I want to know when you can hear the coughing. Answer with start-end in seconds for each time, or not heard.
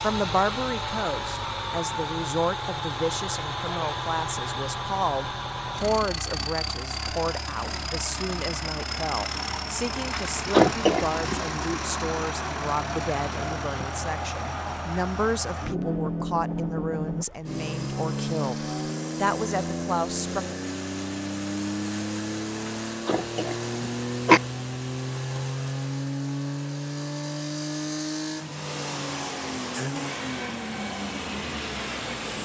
10.1-11.6, 22.6-24.4.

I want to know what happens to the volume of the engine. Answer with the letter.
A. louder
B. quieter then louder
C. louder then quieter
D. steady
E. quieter
D.